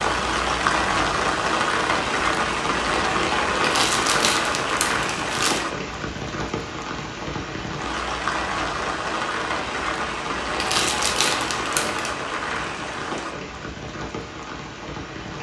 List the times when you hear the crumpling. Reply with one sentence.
The crumpling can be heard from 3.6 to 5.7 s and from 10.6 to 12.2 s.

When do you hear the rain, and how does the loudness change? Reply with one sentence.
The rain can be heard from 0.0 to 15.3 s, getting quieter.